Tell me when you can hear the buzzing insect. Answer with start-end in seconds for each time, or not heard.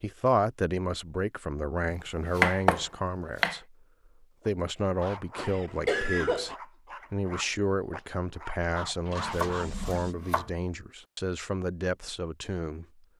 not heard.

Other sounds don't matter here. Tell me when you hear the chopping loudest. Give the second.
3 s.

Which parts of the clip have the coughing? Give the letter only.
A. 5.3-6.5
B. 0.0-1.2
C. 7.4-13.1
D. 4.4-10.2
A.